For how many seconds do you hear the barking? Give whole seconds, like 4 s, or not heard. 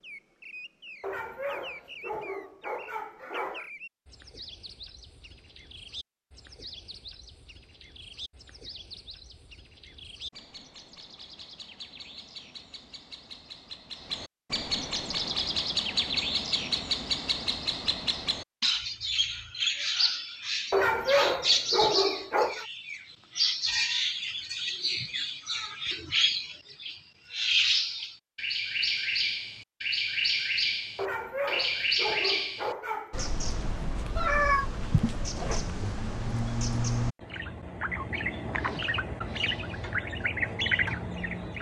7 s.